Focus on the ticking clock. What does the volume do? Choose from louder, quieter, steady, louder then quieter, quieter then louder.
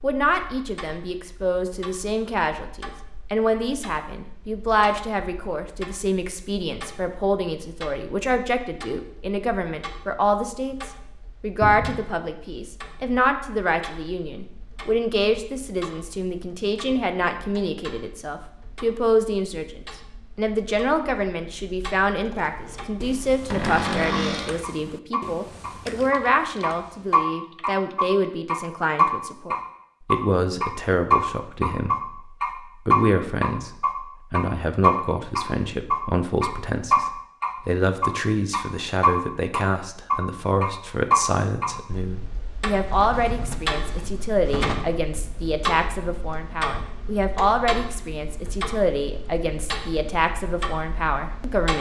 louder then quieter.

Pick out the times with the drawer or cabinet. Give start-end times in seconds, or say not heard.
11.6-12.1, 23.5-24.6, 42.8-45.0.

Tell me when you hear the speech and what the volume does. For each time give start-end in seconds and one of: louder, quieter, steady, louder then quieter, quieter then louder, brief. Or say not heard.
0.0-51.7 steady.